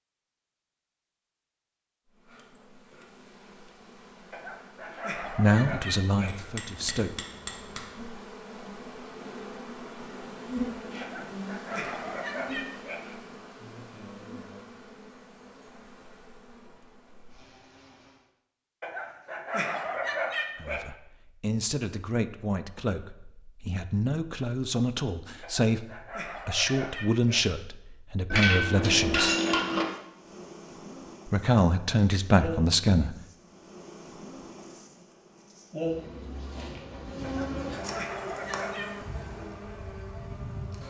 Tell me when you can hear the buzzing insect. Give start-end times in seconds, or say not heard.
2.0-18.3, 29.9-40.8.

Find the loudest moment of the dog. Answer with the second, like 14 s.
20 s.